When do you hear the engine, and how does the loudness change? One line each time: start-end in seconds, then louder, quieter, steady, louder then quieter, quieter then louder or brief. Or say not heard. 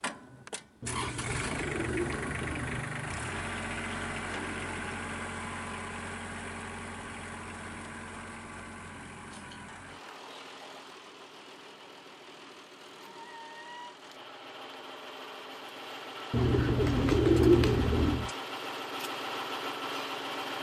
0.0-20.5 quieter then louder.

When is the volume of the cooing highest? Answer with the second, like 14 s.
17 s.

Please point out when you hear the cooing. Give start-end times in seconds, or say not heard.
0.8-2.9, 16.3-18.3.